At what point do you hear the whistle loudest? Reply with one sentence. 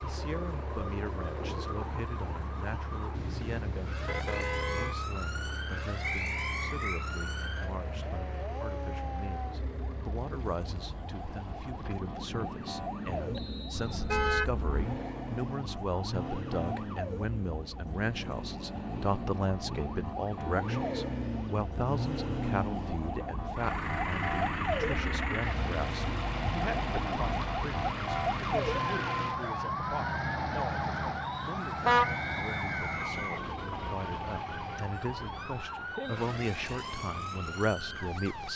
The volume of the whistle peaks at 6 seconds.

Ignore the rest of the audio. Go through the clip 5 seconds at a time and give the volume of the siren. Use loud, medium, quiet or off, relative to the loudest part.
medium, medium, medium, medium, loud, loud, loud, medium.